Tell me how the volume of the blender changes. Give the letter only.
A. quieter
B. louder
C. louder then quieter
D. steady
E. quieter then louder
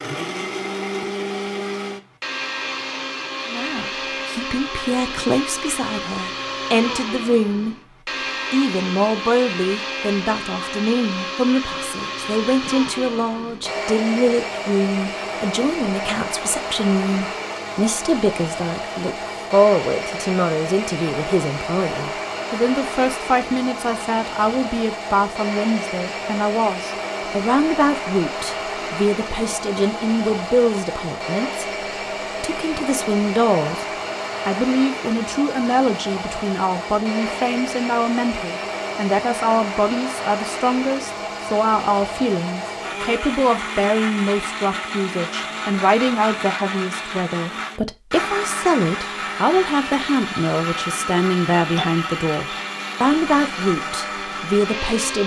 D.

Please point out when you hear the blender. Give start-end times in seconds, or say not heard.
0.0-55.2.